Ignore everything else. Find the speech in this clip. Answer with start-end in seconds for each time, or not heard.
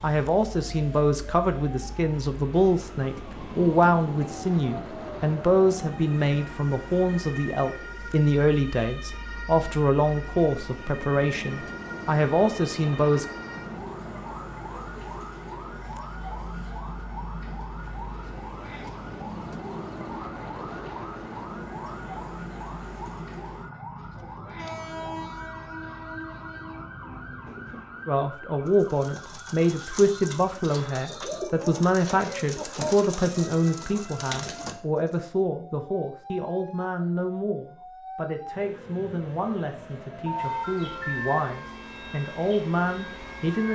0.0-13.2, 28.1-43.7.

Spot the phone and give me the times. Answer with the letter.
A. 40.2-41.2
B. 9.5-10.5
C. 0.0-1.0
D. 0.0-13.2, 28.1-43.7
A.